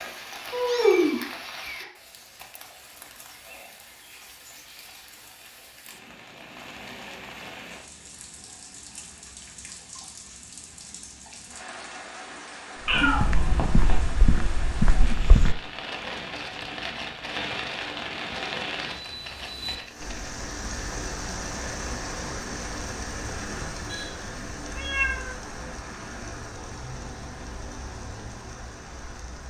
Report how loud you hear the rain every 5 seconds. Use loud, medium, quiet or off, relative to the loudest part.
medium, medium, medium, loud, loud, medium.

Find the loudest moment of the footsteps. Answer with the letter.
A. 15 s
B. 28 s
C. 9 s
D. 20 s
A.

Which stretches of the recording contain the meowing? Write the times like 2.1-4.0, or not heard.
0.5-1.9, 12.8-14.0, 24.8-25.4.